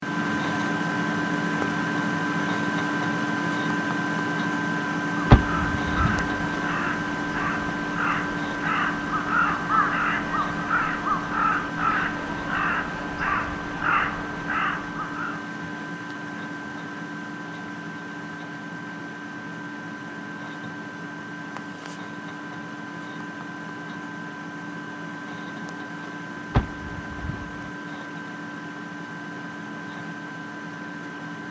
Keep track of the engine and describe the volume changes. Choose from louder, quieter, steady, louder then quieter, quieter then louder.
quieter.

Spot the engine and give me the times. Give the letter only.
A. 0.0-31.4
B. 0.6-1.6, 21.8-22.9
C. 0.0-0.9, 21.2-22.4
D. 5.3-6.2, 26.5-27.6
A.